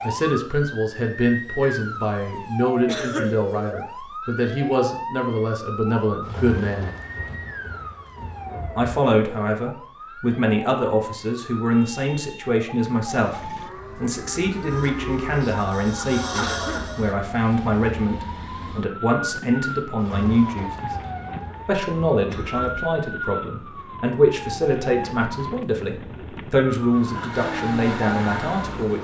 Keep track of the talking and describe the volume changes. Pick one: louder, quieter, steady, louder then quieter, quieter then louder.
steady.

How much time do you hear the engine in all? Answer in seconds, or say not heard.
5 s.